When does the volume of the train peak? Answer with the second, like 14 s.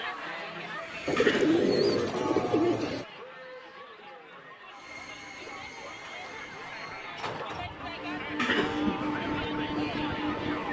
9 s.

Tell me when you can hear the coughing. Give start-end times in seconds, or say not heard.
1.1-1.6, 8.3-9.1.